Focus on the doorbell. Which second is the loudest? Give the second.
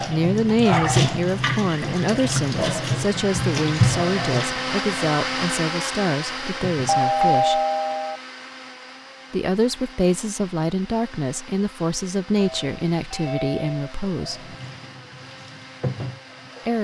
7 s.